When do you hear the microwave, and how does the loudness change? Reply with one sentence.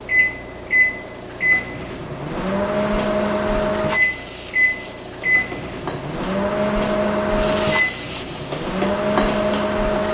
You can hear the microwave from 0.0 to 10.0 s, at a steady volume.